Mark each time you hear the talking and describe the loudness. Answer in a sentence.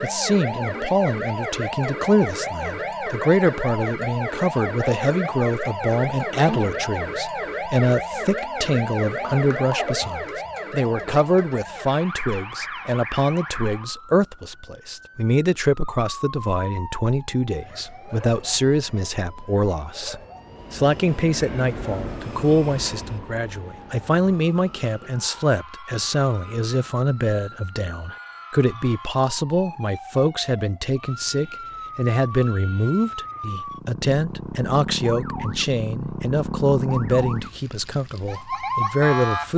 The talking can be heard from 0.0 to 39.5 s, at a steady volume.